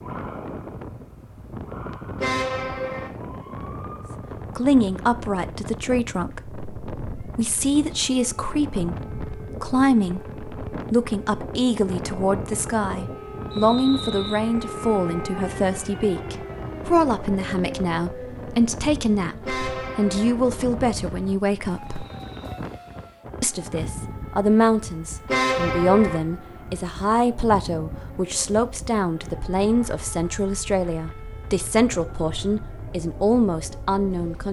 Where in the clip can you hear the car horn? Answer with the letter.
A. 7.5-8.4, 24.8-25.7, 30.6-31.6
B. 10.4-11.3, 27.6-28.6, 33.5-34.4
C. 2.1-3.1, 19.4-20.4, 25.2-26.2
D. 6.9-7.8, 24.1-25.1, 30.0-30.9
C.